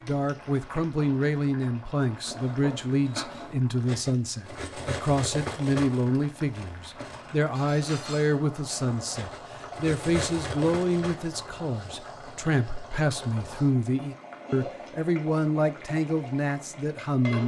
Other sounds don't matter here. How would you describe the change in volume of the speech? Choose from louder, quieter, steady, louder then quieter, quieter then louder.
steady.